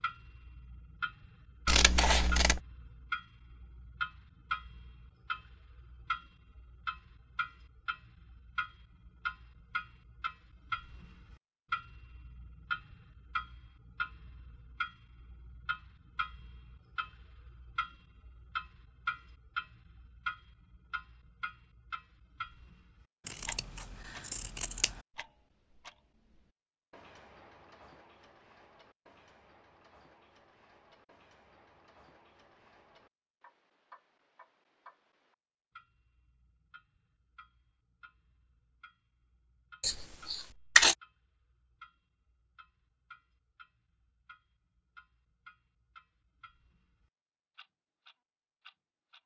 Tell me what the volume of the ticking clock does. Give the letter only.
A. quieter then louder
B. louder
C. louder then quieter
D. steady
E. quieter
E.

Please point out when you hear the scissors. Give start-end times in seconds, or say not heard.
1.6-2.6, 23.2-25.0, 39.8-41.0.